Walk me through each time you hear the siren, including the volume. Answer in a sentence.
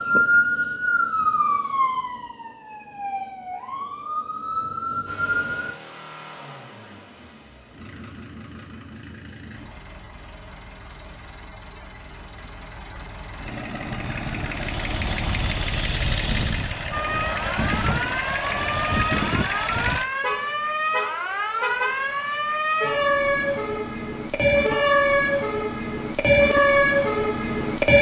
You can hear the siren from 0.0 to 5.8 s, getting quieter then louder; and from 16.9 to 27.9 s, getting louder.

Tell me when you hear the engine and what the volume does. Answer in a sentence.
You can hear the engine from 5.0 to 20.1 s, getting louder.